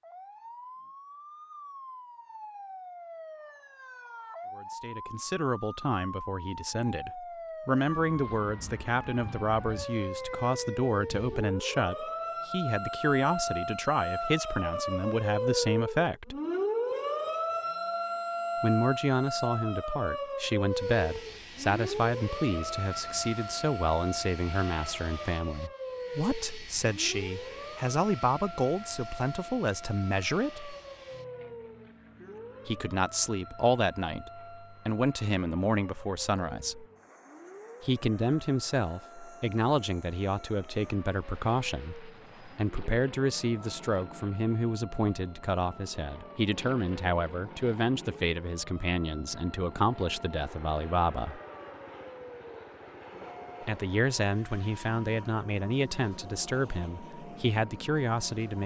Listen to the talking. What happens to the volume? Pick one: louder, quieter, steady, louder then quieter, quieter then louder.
steady.